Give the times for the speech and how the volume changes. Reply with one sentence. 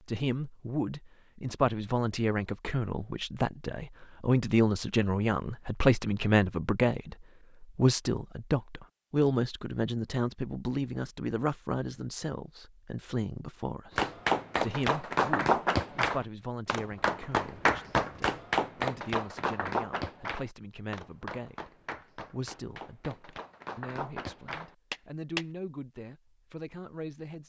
The speech can be heard from 0.1 to 27.4 s, getting quieter.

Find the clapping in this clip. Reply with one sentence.
You can hear the clapping from 13.9 to 25.4 s.